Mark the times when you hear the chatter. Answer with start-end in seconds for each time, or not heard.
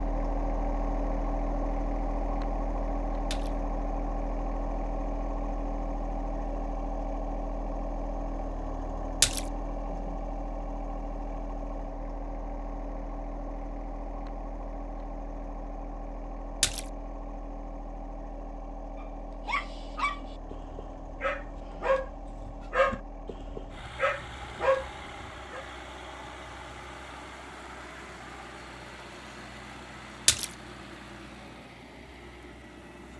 not heard.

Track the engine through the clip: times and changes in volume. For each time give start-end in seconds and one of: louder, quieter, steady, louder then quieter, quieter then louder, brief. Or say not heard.
0.0-33.1 quieter.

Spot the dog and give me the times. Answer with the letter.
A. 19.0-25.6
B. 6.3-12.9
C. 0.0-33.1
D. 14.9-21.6
A.